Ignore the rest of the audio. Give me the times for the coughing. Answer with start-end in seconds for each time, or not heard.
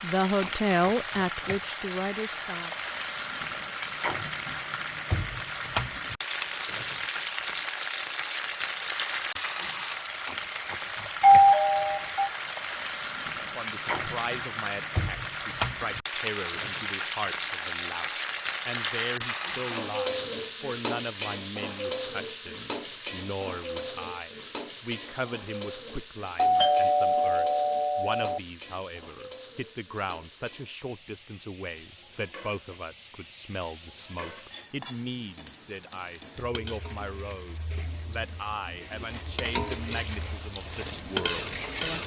not heard.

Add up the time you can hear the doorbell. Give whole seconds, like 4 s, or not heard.
3 s.